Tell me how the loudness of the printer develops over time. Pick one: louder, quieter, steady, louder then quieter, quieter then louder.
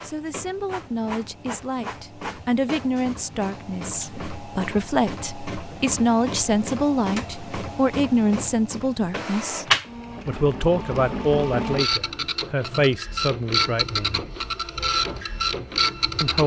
louder.